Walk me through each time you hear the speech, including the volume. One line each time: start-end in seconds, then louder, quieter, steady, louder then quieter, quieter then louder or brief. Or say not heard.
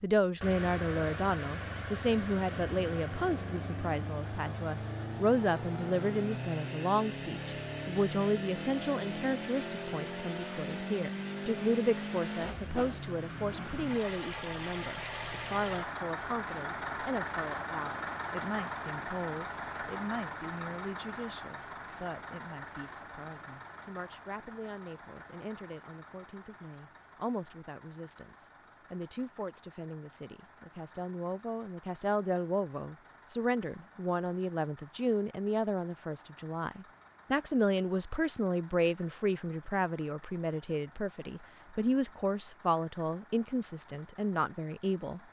0.0-45.2 quieter then louder.